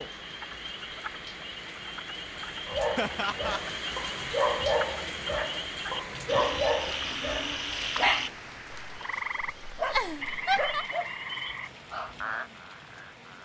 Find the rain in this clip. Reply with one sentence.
The rain can be heard from 0.0 to 13.4 s.